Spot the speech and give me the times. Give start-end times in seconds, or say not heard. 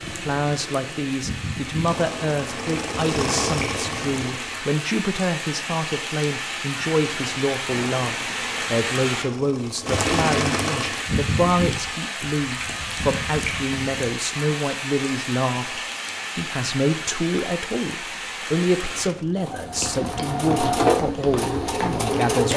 0.1-22.5.